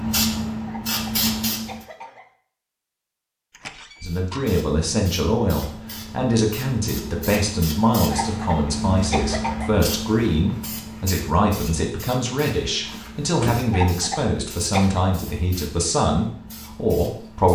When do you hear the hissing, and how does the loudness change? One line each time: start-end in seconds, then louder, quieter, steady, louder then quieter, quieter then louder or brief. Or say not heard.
0.0-1.8 brief
4.0-17.5 louder then quieter.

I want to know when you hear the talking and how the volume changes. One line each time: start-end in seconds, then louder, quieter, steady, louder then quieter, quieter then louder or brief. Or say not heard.
4.0-17.5 steady.